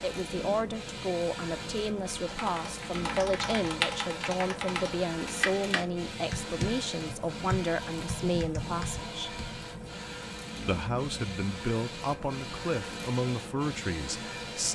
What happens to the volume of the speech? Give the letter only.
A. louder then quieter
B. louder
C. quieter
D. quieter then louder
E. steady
E.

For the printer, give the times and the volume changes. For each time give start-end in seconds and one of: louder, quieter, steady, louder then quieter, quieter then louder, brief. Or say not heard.
0.0-14.6 steady.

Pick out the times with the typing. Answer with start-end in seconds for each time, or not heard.
2.2-9.7.